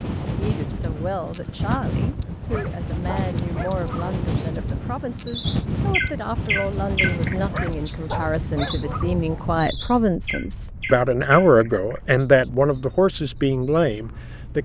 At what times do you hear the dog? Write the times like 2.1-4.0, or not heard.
2.5-4.2, 7.5-9.4.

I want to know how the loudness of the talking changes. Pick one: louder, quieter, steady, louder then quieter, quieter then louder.
louder.